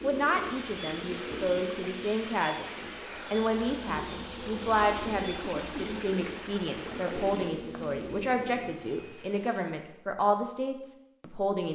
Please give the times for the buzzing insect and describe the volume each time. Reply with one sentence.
The buzzing insect can't be heard in this clip.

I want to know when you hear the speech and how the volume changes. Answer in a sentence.
You can hear the speech from 0.0 to 11.6 s, at a steady volume.